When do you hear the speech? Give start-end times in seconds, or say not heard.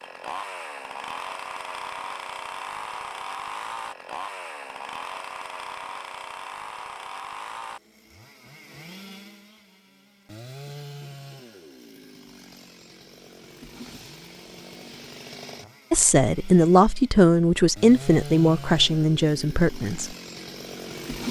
15.9-20.1.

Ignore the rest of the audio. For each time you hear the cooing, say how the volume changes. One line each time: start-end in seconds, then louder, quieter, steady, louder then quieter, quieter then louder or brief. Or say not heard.
not heard.